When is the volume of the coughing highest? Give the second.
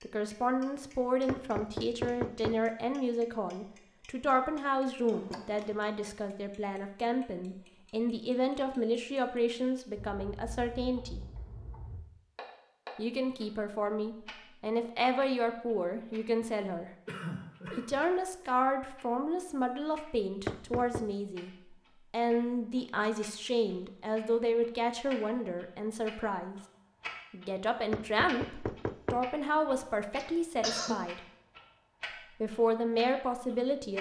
31 s.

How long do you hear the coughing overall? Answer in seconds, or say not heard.
3 s.